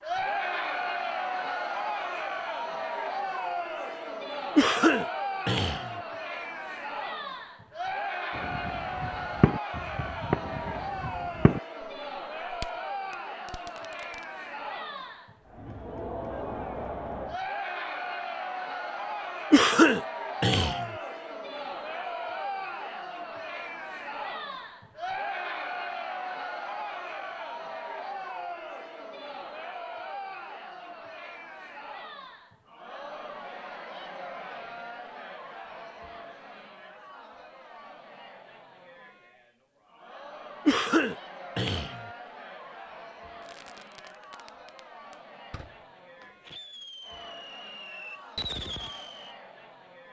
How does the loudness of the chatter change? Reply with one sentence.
The loudness of the chatter goes down.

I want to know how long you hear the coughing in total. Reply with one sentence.
You can hear the coughing for 4 seconds altogether.